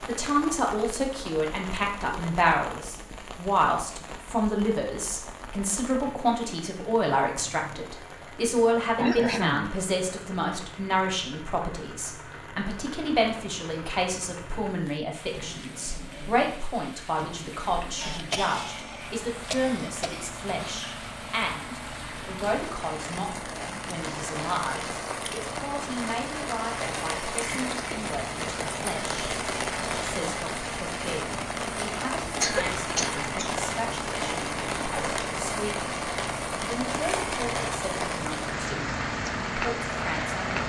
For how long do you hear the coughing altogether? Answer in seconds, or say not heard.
5 s.